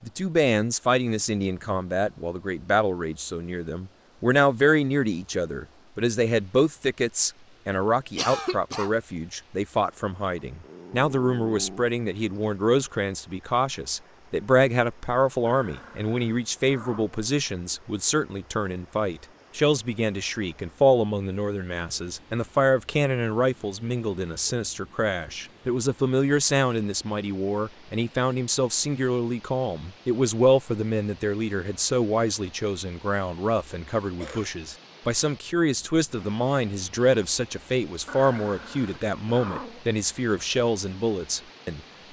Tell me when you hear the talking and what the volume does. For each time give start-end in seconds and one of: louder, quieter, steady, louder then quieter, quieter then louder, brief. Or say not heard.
0.0-42.0 steady.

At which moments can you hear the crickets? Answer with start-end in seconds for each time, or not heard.
not heard.